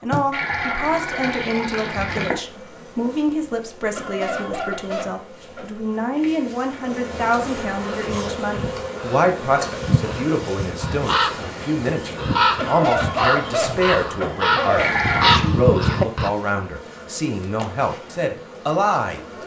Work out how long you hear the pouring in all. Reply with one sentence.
The pouring can be heard for 3 seconds in total.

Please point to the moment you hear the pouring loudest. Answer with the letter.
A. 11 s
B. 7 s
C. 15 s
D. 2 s
C.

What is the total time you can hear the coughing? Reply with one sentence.
The coughing can be heard for 4 seconds in total.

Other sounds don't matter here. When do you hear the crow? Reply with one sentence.
The crow can be heard from 7.8 to 16.3 s.